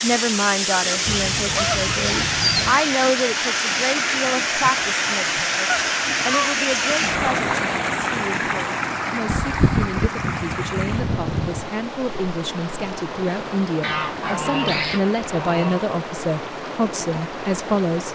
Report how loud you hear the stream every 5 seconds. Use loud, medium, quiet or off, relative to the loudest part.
loud, loud, medium, medium.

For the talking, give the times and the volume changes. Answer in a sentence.
You can hear the talking from 0.0 to 18.1 s, getting quieter then louder.